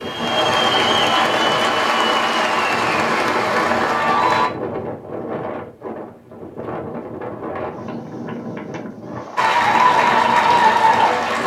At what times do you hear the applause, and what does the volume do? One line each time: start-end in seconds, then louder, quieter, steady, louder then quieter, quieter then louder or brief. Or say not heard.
0.0-4.5 steady
9.3-11.4 brief.